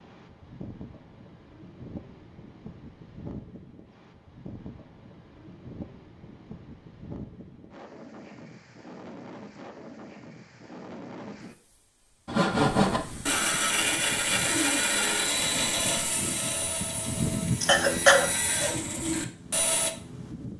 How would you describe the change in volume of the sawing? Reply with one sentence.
The loudness of the sawing goes down, then up.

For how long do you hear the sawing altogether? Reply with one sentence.
The sawing can be heard for 8 seconds in total.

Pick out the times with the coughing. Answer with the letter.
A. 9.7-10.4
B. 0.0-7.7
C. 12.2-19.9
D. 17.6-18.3
D.